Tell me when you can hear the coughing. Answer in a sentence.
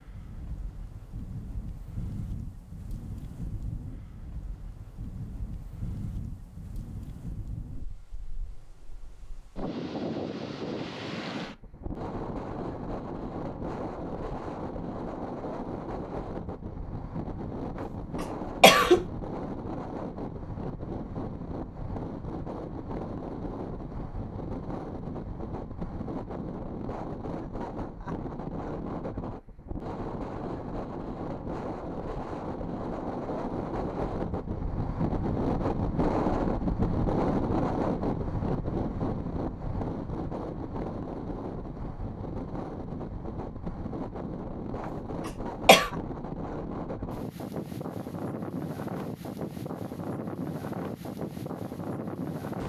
You can hear the coughing from 18.2 to 19.1 s and from 45.2 to 45.9 s.